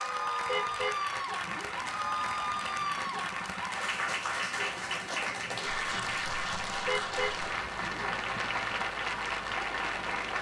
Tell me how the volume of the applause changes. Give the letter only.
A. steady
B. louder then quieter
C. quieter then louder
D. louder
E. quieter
A.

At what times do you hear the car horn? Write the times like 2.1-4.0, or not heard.
0.5-1.9, 6.8-8.1.